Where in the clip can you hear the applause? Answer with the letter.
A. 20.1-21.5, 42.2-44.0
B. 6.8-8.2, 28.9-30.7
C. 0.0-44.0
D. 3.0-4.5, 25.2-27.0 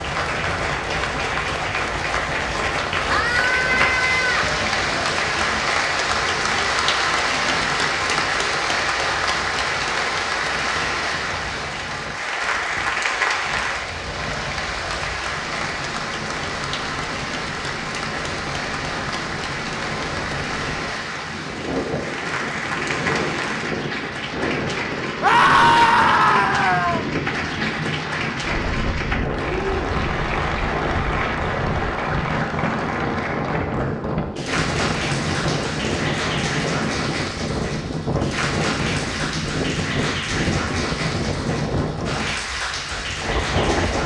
C.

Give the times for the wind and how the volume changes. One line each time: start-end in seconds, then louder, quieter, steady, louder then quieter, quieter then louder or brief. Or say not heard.
0.0-44.0 louder.